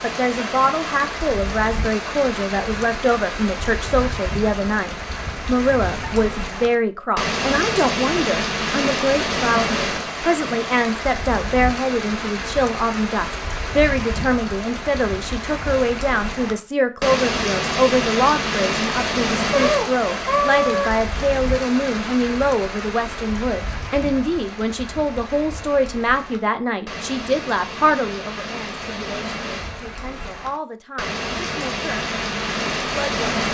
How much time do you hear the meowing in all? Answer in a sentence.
You can hear the meowing for 2 seconds altogether.